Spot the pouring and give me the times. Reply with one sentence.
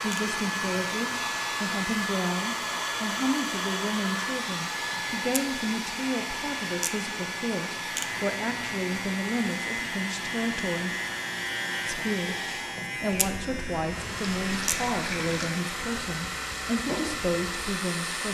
You can hear the pouring from 13.2 to 15.5 s.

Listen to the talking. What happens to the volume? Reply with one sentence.
The volume of the talking stays about the same.